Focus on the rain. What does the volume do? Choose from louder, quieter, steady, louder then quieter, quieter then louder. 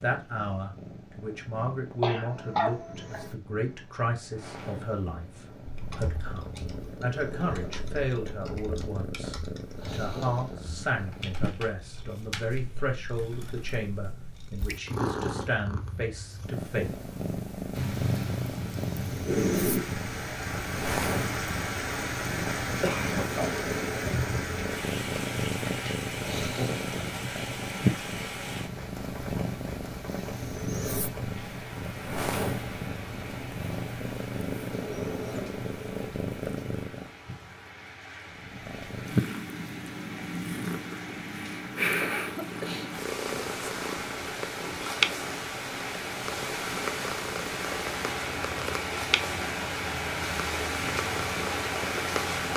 quieter then louder.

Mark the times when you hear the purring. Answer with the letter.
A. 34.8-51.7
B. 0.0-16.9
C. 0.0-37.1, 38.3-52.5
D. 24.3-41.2
C.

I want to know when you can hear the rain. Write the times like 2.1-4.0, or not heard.
17.7-52.5.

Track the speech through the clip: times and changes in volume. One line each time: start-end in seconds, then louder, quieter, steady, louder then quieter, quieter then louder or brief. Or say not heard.
0.0-16.9 steady.